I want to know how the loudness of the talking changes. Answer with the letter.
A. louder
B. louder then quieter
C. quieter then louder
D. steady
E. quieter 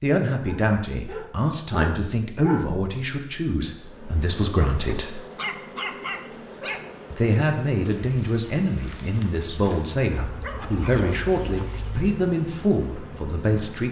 D.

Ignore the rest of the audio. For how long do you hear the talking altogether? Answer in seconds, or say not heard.
12 s.